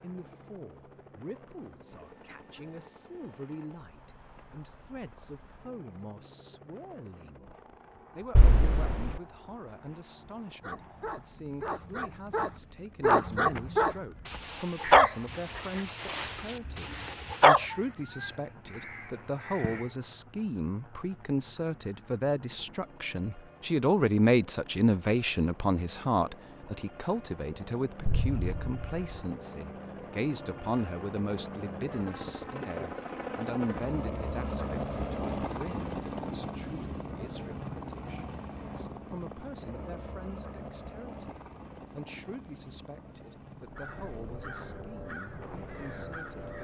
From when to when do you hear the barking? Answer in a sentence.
You can hear the barking from 10.6 to 17.6 s.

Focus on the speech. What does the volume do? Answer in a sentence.
The volume of the speech goes up, then down.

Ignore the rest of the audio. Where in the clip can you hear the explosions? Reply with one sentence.
The explosions can be heard from 8.3 to 9.2 s and from 28.1 to 29.1 s.